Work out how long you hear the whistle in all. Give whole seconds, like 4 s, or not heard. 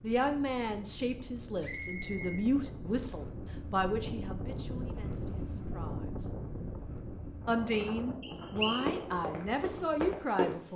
2 s.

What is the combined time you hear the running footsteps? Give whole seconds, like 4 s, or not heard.
2 s.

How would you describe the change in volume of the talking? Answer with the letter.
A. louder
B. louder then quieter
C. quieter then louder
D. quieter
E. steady
C.